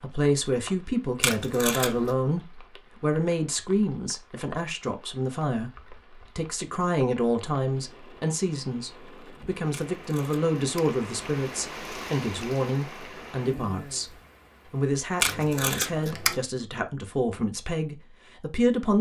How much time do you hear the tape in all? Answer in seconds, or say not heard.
3 s.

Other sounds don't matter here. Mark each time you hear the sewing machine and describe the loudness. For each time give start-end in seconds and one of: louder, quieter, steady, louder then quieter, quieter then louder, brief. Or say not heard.
not heard.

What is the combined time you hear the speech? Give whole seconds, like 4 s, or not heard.
19 s.